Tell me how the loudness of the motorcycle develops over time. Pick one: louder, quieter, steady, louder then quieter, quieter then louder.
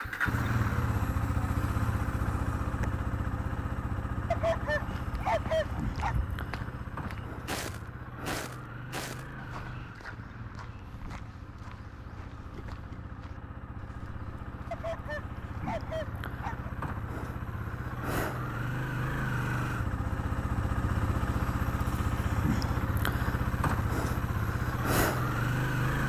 quieter then louder.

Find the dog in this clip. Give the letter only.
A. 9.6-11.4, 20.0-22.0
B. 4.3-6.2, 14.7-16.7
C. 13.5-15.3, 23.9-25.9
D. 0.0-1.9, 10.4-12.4
B.